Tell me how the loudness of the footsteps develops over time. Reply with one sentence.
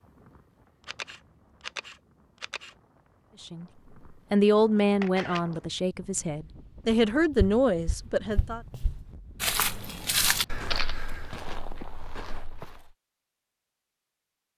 The loudness of the footsteps goes up, then down.